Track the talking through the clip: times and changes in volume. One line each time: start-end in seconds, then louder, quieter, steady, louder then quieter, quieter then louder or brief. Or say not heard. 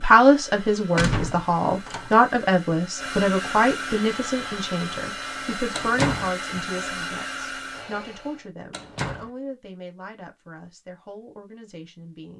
0.0-12.3 quieter.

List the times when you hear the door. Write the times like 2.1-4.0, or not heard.
0.9-2.1, 5.7-6.3, 8.7-9.3.